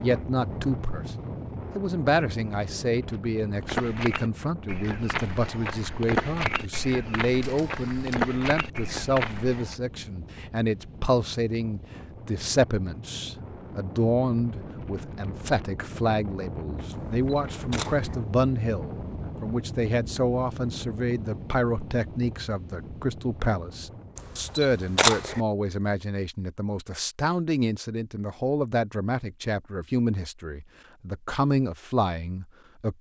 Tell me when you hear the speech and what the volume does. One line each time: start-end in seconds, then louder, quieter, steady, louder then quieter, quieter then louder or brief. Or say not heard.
0.0-32.9 steady.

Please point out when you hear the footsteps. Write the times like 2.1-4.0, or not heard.
3.6-9.8.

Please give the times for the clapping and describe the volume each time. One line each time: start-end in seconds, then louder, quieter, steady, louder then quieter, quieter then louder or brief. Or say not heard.
not heard.